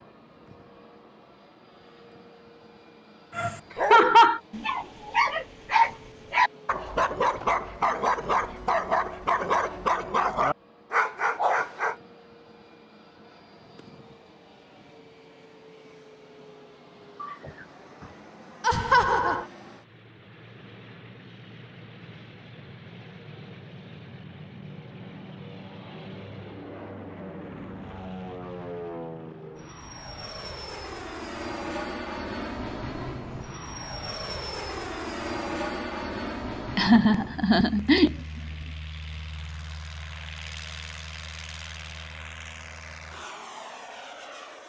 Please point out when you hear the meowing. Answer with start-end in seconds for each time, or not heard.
17.1-18.2.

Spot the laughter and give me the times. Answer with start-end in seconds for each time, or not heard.
3.5-4.4, 18.6-19.4, 36.8-38.2.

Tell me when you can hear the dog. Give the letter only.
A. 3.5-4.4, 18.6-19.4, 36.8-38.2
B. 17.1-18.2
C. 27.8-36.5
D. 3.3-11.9
D.